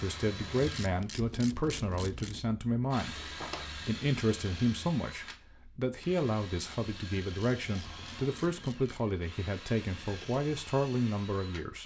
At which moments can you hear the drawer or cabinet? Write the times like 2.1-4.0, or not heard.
3.2-3.6, 7.7-8.3.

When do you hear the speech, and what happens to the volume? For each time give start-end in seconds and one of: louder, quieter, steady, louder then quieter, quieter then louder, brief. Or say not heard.
0.0-11.8 steady.